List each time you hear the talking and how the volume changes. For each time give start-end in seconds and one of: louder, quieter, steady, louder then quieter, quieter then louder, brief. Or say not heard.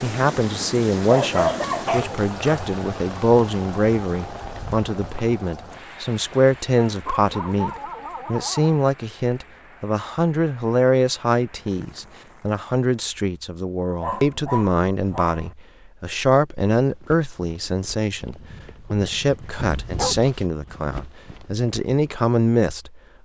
0.0-23.0 steady.